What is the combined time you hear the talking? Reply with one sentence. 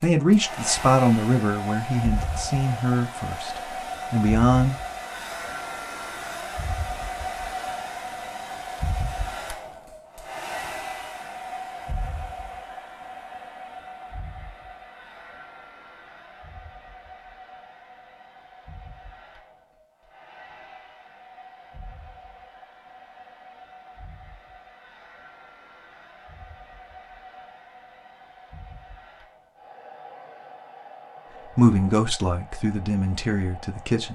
The talking can be heard for 7 seconds in total.